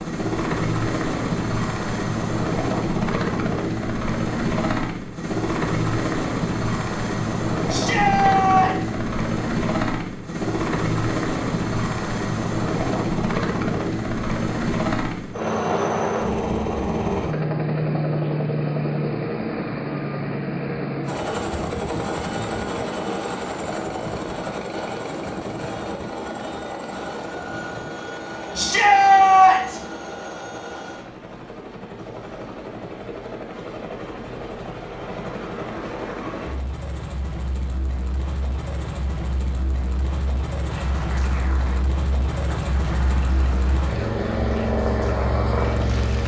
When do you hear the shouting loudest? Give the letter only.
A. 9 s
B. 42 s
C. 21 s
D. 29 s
D.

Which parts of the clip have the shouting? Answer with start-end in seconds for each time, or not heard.
7.7-8.9, 28.6-29.8.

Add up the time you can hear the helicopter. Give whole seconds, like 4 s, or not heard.
46 s.